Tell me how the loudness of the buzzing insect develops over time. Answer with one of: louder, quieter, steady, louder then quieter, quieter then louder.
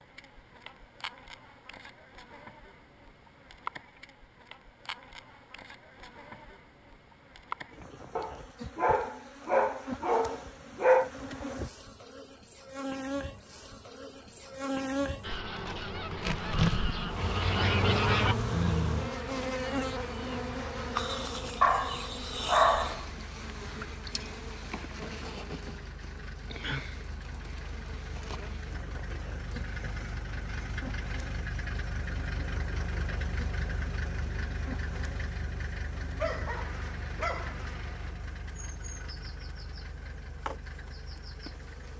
louder then quieter.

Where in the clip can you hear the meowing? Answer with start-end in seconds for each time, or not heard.
not heard.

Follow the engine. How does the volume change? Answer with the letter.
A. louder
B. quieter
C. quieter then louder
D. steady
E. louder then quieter
E.